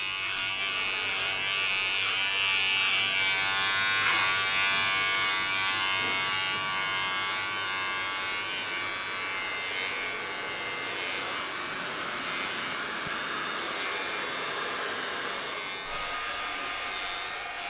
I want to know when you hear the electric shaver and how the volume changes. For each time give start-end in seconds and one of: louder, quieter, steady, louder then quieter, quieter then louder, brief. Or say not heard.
0.0-17.6 quieter.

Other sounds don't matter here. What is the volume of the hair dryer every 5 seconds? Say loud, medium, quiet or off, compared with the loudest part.
medium, medium, loud, loud.